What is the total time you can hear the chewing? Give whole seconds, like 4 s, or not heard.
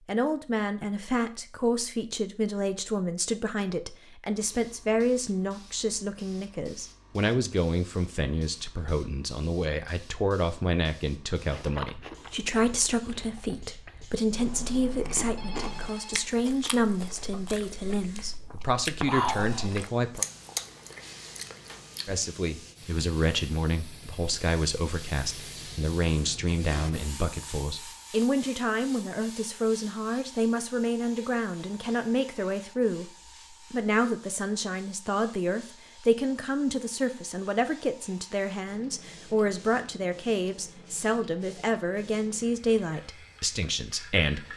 11 s.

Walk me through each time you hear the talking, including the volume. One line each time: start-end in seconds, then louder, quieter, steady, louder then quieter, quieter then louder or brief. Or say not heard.
0.1-20.2 steady
22.1-44.5 steady.